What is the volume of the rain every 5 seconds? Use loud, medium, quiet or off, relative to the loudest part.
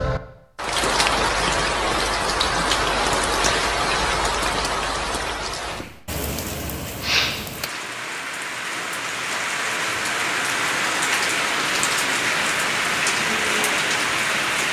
loud, medium, loud.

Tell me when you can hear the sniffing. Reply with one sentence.
You can hear the sniffing from 7.0 to 7.8 s.